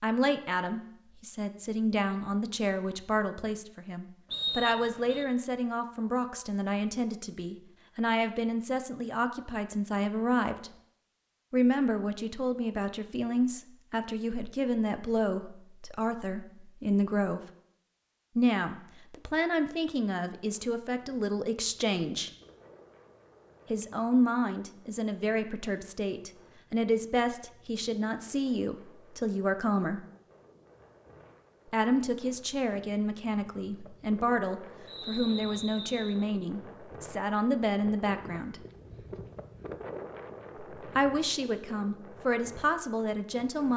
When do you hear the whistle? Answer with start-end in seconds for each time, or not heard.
4.3-5.2, 34.9-36.2.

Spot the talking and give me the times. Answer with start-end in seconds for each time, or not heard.
0.0-10.7, 11.5-17.5, 18.4-22.3, 23.7-30.1, 31.6-38.6, 40.8-43.7.